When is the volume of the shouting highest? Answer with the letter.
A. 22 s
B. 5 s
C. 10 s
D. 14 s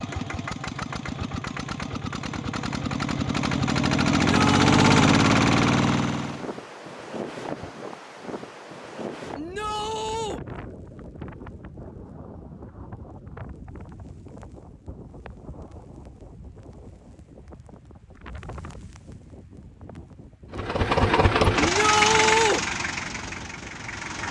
A.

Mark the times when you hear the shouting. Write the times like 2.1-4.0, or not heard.
4.2-5.0, 9.3-10.4, 21.6-22.6.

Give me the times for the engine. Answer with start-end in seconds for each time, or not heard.
0.0-6.5, 20.5-24.2.